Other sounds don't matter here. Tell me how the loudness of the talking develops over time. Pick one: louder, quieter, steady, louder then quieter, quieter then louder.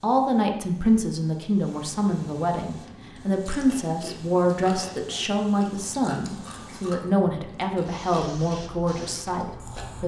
steady.